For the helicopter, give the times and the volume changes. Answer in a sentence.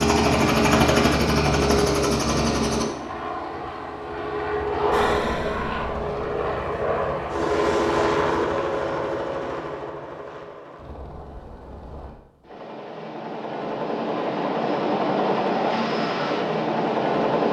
The helicopter can be heard from 0.0 to 17.4 s, getting quieter then louder.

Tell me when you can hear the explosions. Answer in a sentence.
You can hear the explosions from 4.9 to 6.2 s.